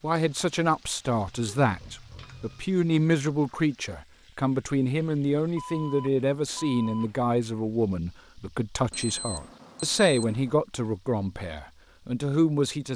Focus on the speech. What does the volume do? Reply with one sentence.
The loudness of the speech stays about the same.